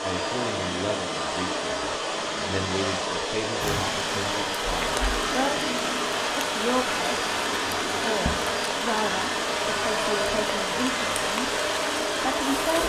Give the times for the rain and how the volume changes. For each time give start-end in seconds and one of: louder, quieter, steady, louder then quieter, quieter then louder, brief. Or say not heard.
3.6-12.8 steady.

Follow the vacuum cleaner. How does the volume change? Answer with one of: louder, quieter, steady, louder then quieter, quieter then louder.
steady.